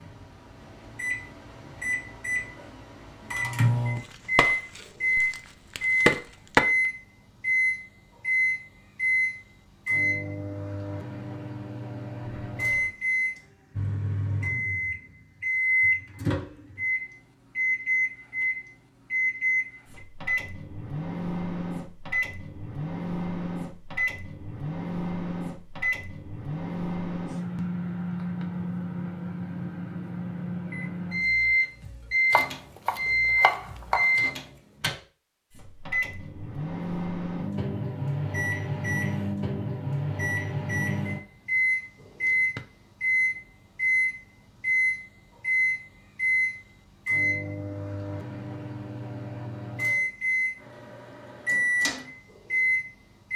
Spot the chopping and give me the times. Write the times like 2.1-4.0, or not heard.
4.0-6.6, 32.3-34.1.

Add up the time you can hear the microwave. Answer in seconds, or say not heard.
53 s.